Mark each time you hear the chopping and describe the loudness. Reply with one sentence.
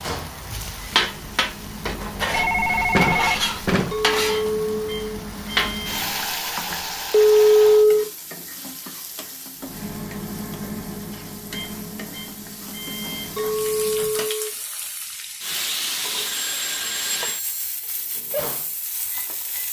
The chopping can't be heard in this clip.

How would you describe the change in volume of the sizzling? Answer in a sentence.
The loudness of the sizzling goes down, then up.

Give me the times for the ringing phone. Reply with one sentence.
You can hear the ringing phone from 2.3 to 3.9 s, from 7.1 to 8.1 s and from 16.2 to 17.5 s.